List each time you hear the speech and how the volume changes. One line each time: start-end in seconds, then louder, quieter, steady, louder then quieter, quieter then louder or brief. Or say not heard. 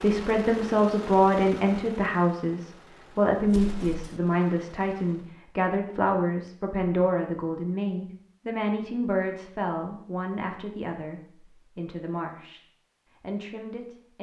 0.0-12.6 quieter
13.2-14.1 brief.